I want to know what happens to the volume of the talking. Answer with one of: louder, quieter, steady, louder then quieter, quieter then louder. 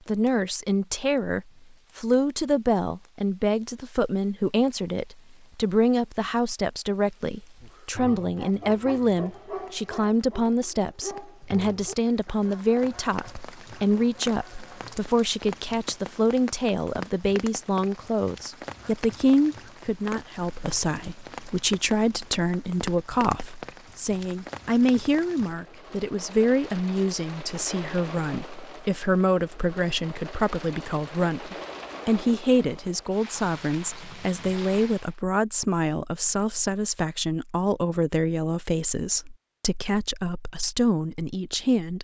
steady.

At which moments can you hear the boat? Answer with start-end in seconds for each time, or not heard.
not heard.